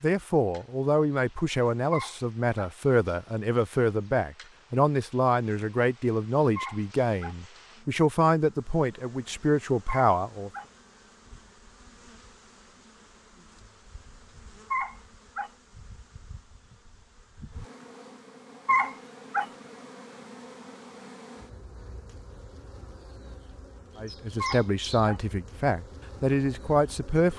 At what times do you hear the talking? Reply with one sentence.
You can hear the talking from 0.0 to 10.5 s and from 23.9 to 27.3 s.